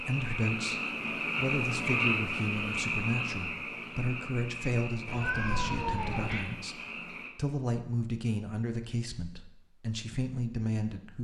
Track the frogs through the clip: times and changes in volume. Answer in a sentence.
You can hear the frogs from 0.0 to 7.3 s, getting quieter.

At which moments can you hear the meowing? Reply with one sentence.
The meowing can be heard from 5.0 to 6.5 s.